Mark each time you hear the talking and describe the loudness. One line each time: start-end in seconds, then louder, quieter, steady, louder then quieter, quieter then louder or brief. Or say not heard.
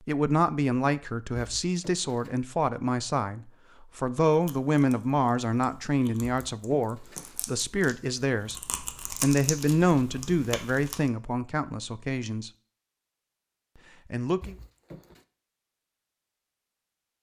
0.1-12.5 steady
14.1-14.6 brief.